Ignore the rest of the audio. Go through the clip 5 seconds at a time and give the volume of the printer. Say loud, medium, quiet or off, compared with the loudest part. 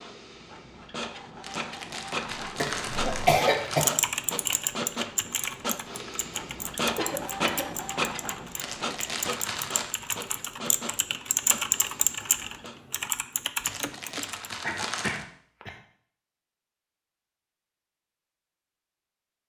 loud, loud, medium, off.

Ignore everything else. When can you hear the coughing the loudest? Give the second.
3 s.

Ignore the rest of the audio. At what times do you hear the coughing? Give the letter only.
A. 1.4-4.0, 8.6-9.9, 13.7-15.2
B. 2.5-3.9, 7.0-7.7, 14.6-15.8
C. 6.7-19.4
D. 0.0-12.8
B.